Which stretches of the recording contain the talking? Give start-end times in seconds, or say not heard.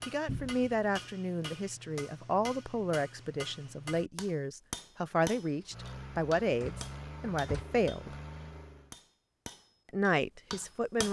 0.1-8.2, 9.9-11.0.